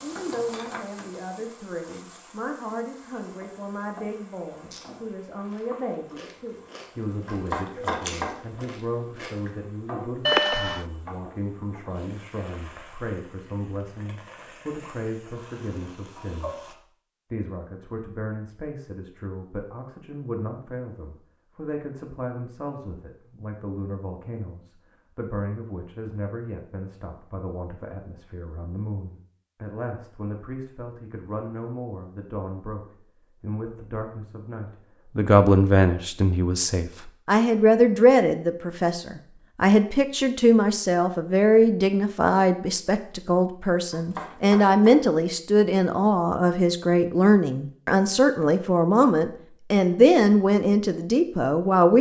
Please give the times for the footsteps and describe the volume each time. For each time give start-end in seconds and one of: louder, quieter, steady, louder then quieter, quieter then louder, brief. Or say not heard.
not heard.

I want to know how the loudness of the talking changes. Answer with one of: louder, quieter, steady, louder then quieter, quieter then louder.
louder.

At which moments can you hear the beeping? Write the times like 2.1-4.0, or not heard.
10.2-10.8.